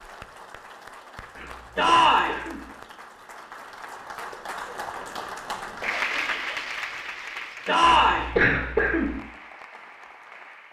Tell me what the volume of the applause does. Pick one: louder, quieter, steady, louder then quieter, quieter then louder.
louder then quieter.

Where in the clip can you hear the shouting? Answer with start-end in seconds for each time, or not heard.
1.8-2.4, 7.7-8.3.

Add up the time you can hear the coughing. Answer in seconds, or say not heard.
3 s.